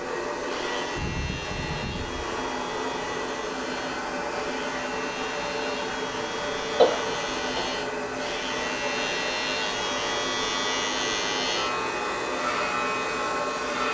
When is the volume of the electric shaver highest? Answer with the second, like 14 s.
11 s.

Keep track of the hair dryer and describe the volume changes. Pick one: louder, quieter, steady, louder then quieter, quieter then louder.
steady.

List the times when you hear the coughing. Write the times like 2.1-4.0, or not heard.
6.8-7.8.